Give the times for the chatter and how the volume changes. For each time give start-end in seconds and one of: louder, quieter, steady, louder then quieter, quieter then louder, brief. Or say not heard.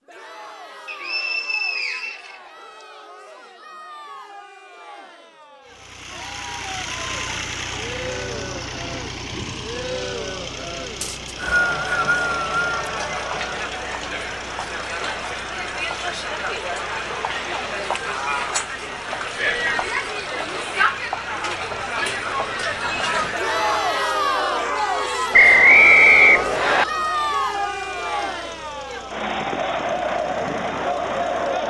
0.0-31.6 louder.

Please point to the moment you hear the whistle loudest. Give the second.
26 s.